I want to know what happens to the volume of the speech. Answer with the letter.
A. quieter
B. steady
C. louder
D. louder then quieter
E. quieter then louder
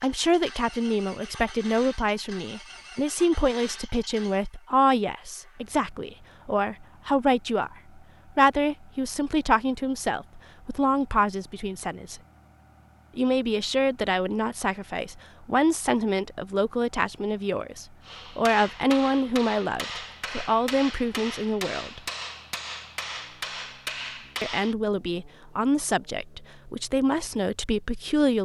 B.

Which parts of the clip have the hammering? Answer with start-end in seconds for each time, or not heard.
18.1-24.8.